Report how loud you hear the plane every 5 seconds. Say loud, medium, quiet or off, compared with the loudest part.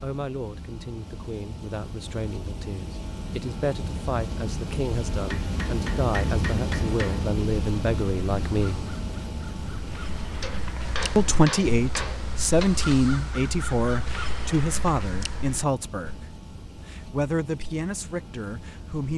medium, loud, medium, quiet.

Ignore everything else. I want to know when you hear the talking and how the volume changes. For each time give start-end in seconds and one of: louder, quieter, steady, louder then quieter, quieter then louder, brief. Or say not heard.
0.0-8.9 louder
11.2-19.1 quieter.